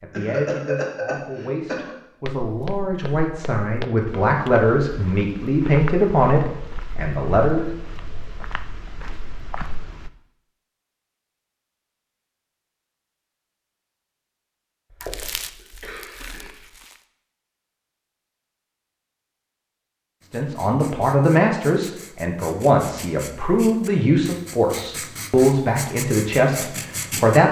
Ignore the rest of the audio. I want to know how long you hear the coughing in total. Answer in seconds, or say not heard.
4 s.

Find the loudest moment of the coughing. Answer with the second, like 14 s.
1 s.